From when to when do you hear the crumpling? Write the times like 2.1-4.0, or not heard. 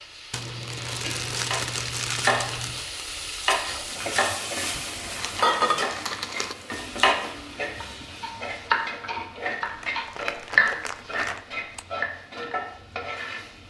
0.3-2.9, 4.7-6.5, 9.6-11.8.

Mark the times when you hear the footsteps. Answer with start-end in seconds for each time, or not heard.
not heard.